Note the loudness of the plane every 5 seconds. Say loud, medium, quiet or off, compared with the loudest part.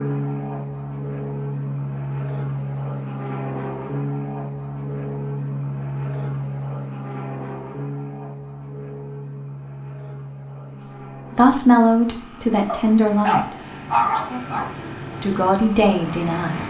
loud, loud, medium, medium.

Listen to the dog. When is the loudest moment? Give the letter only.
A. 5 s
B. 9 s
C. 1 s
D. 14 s
D.